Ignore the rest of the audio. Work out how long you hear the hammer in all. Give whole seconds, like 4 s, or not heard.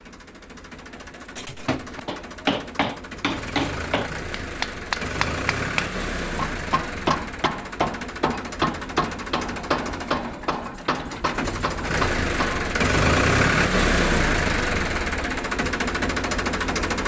11 s.